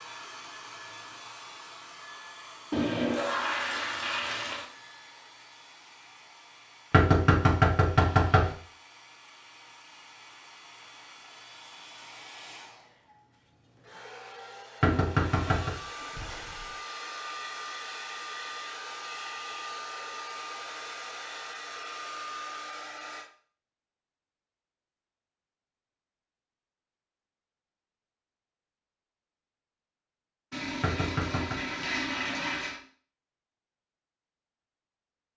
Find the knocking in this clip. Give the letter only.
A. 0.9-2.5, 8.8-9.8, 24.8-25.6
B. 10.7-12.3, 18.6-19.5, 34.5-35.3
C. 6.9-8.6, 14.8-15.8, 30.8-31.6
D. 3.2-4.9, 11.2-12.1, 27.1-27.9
C.